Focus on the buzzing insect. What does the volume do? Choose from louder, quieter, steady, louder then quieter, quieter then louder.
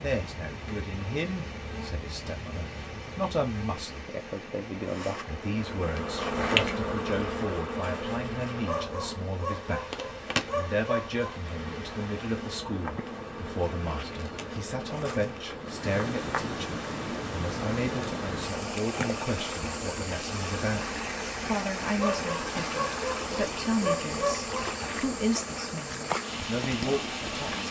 louder then quieter.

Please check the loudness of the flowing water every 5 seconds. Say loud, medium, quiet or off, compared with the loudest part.
medium, medium, medium, loud, loud, loud.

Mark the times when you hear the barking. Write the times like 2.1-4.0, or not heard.
8.7-11.4, 21.9-24.8.